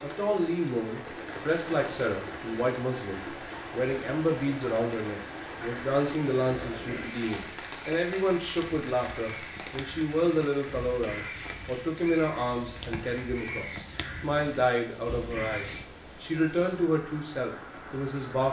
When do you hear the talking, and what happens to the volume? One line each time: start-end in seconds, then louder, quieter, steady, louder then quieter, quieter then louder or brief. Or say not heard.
0.0-18.4 steady.